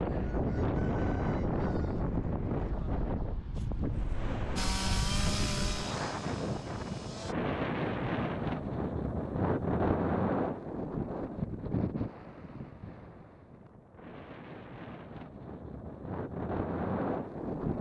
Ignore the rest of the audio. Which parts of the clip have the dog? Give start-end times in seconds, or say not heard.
not heard.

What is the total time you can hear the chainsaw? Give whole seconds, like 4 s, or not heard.
3 s.